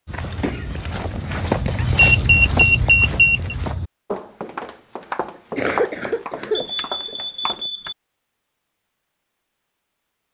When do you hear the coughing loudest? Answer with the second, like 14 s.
6 s.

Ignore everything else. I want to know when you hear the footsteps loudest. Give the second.
2 s.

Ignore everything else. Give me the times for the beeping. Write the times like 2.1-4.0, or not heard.
1.9-3.5, 6.5-8.0.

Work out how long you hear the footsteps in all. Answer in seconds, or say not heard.
8 s.